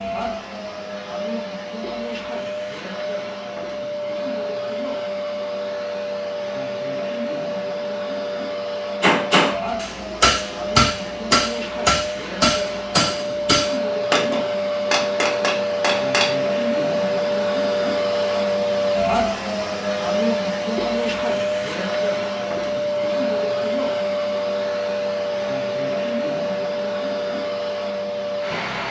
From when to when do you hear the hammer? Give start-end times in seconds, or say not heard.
9.0-16.4.